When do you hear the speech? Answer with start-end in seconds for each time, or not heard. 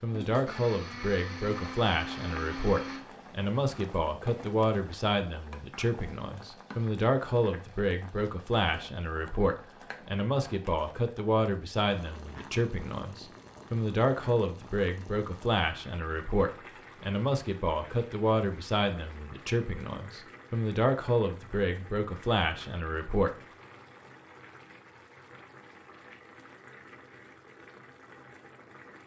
0.0-23.3.